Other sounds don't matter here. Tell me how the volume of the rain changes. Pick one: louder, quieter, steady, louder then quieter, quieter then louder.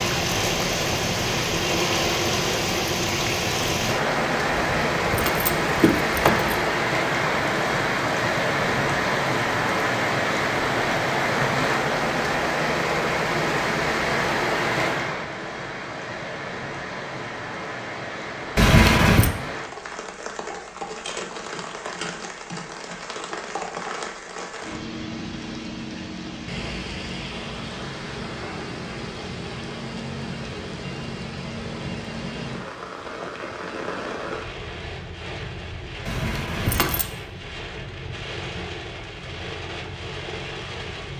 quieter.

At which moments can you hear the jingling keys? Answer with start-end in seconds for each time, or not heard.
4.5-6.6, 18.6-19.3, 36.0-37.0.